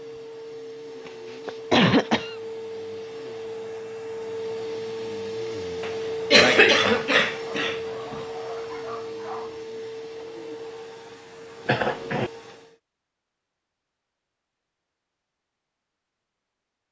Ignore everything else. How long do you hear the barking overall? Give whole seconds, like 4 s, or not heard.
2 s.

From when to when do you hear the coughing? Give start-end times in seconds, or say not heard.
1.1-2.4, 5.8-7.8, 11.7-12.3.